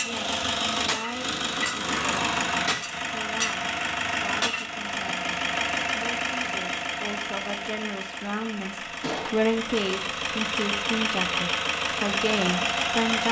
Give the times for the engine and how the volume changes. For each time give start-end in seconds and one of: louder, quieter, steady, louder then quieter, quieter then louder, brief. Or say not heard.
0.0-13.2 quieter then louder.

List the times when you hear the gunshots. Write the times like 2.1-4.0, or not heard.
9.0-9.4.